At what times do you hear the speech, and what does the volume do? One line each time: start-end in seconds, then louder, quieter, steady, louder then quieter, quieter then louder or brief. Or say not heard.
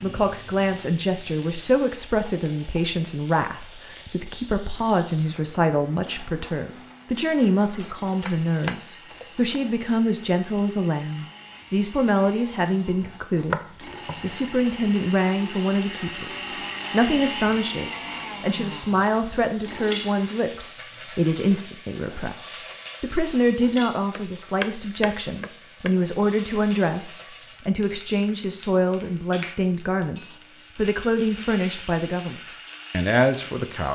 0.0-33.9 steady.